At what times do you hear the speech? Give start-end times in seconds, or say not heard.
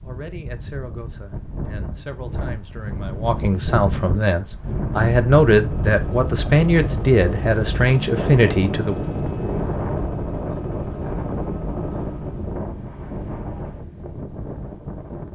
0.0-9.1.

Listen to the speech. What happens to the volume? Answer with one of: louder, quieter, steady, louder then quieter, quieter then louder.
louder.